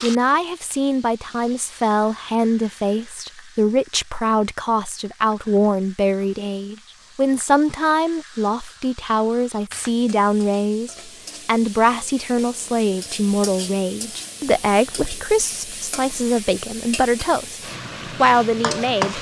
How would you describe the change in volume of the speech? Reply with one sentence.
The volume of the speech stays about the same.